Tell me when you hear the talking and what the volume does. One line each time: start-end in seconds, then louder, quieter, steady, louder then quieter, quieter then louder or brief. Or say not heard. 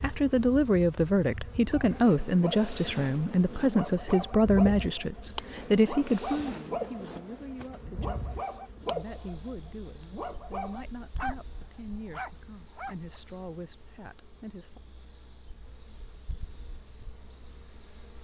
0.0-14.8 quieter.